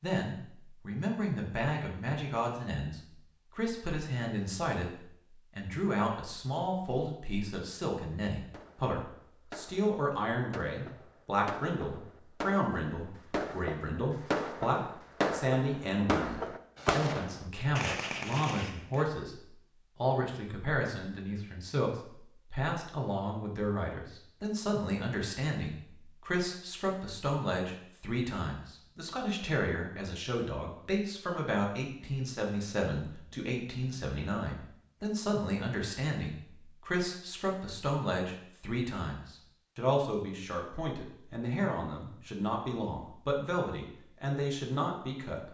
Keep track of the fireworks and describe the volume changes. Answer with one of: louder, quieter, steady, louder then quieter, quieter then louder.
louder.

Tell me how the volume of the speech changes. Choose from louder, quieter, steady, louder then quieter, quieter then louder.
steady.